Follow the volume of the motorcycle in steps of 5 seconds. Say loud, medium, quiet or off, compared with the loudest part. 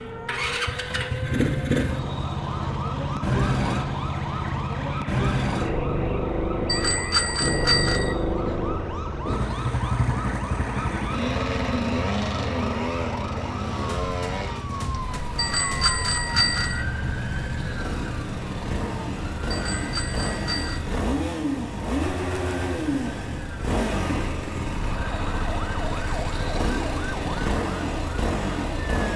loud, loud, loud, medium, loud, loud.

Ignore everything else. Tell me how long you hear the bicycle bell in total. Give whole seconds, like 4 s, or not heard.
4 s.